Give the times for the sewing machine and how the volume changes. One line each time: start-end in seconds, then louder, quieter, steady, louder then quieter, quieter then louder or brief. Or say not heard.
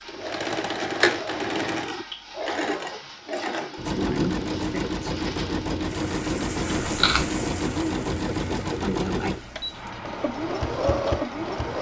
0.1-11.7 steady.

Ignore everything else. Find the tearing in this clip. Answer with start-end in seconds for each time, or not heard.
6.7-7.2.